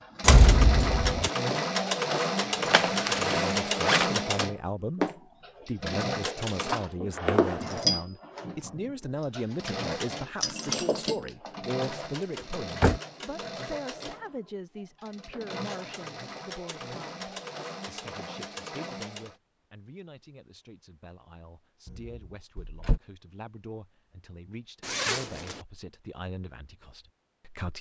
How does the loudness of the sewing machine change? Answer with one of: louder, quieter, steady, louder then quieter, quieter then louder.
quieter.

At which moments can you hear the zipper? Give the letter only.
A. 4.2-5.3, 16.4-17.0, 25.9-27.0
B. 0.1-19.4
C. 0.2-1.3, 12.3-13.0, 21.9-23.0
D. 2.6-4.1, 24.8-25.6
D.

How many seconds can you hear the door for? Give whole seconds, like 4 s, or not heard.
3 s.